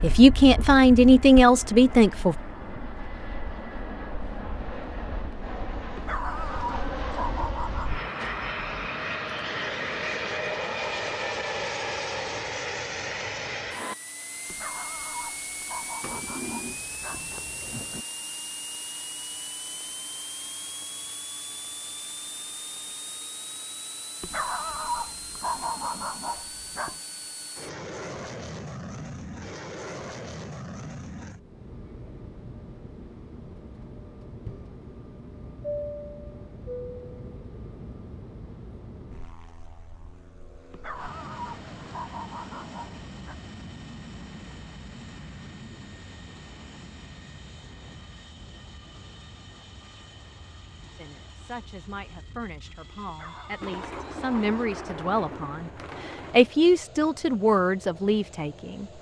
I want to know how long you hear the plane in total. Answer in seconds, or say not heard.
59 s.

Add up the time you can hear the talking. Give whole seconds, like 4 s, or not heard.
10 s.